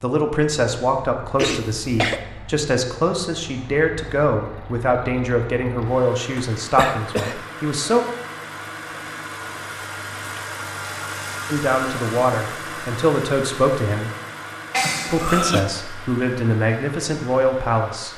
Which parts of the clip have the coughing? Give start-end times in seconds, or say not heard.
1.4-2.2, 6.3-7.3, 14.7-15.7.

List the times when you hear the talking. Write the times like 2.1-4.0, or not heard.
0.0-8.0, 11.4-14.1, 15.1-18.1.